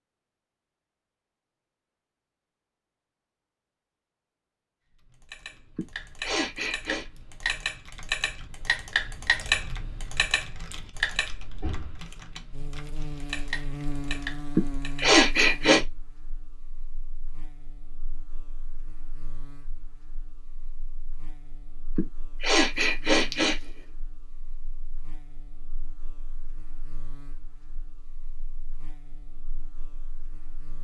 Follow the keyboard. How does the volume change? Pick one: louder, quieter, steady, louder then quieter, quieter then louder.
louder then quieter.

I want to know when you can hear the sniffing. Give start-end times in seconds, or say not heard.
5.8-7.0, 14.6-15.8, 21.9-23.6.